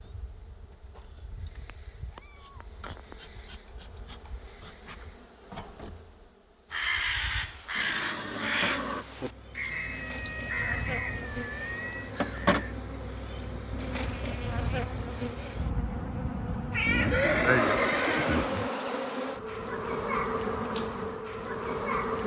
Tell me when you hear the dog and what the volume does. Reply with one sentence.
The dog can't be heard in this clip.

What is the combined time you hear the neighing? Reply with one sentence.
You can hear the neighing for 3 seconds altogether.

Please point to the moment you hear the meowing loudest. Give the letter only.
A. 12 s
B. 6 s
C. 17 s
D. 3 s
C.